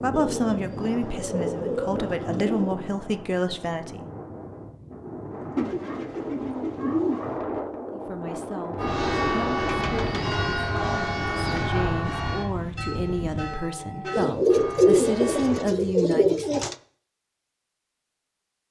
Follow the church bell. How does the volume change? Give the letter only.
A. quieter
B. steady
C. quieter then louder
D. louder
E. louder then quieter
A.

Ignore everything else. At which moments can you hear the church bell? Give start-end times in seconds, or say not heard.
8.8-15.7.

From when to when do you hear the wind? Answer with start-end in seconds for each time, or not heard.
0.0-13.6.